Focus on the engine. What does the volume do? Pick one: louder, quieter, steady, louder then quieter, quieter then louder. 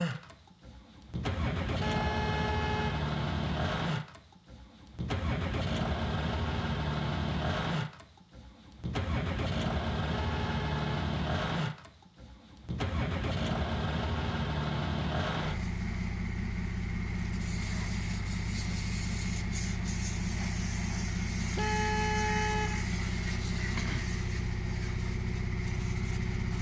steady.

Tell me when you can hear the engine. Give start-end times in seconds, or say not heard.
0.0-26.5.